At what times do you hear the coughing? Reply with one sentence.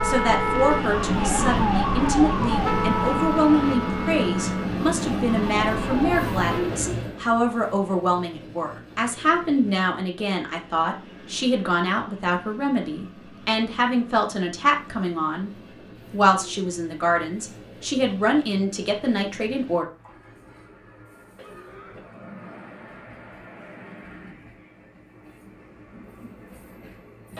You can hear the coughing from 21.4 to 22.1 s.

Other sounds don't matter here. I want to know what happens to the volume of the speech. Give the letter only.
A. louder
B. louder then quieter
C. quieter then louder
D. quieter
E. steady
E.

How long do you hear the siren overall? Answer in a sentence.
You can hear the siren for 7 seconds altogether.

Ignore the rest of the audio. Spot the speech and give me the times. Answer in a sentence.
The speech can be heard from 0.0 to 19.9 s.